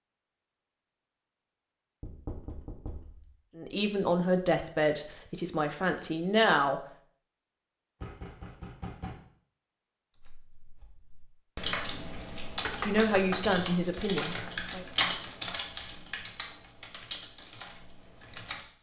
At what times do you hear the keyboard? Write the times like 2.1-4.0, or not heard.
10.2-18.7.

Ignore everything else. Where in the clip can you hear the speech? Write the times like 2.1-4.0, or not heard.
3.5-6.8, 12.8-14.8.